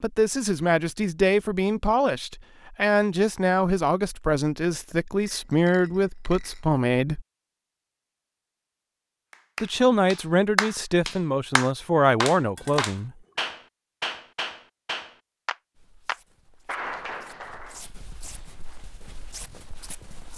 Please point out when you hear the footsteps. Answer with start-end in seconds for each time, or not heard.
15.9-20.3.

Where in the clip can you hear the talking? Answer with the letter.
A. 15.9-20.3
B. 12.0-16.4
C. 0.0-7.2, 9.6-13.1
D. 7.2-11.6
C.